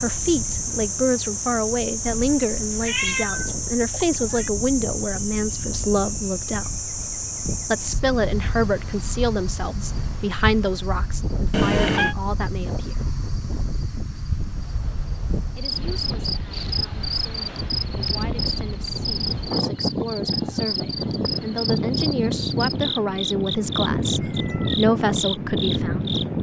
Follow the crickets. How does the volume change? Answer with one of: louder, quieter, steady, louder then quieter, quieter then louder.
quieter then louder.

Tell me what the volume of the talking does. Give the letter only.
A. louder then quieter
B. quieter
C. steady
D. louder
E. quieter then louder
E.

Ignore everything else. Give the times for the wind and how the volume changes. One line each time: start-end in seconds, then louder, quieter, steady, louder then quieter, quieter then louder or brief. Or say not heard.
0.0-26.3 louder.